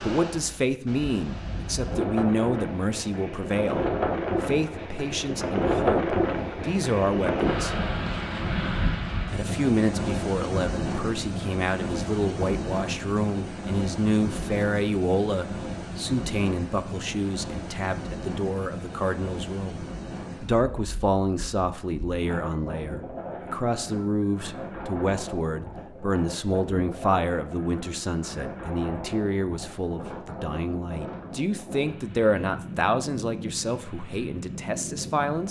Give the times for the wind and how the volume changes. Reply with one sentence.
You can hear the wind from 0.0 to 35.4 s, getting quieter.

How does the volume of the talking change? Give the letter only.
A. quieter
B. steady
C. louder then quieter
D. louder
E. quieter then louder
B.